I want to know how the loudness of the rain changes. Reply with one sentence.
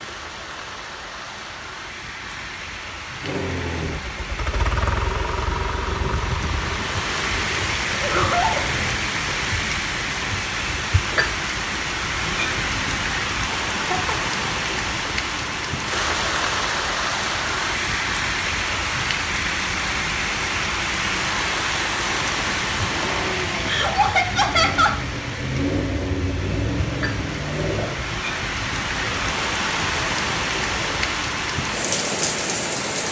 The loudness of the rain goes up.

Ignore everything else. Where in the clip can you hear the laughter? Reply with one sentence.
You can hear the laughter from 7.9 to 8.7 s, from 13.8 to 14.3 s and from 23.6 to 24.9 s.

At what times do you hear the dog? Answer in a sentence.
The dog can't be heard in this clip.